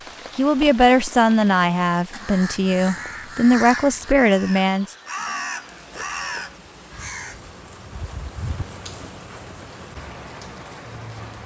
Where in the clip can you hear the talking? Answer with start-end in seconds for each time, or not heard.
0.3-5.0.